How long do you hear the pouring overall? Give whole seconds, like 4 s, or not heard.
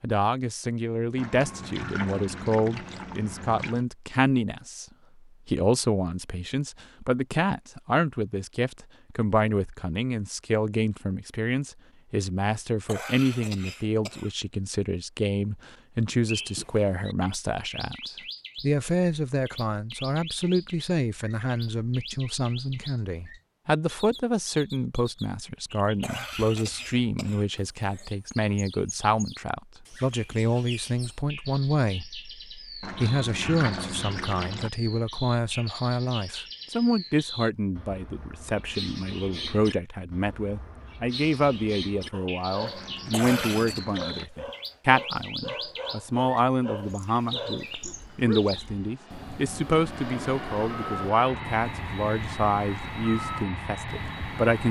6 s.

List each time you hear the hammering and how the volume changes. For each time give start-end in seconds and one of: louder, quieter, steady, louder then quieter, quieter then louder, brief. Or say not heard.
not heard.